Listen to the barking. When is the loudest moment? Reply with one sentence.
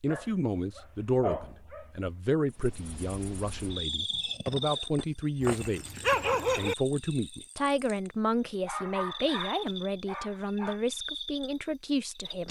The volume of the barking peaks at 6 seconds.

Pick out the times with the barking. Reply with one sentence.
The barking can be heard from 0.1 to 2.1 s, from 5.4 to 6.8 s and from 8.7 to 10.8 s.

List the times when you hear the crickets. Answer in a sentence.
The crickets can be heard from 2.5 to 12.4 s.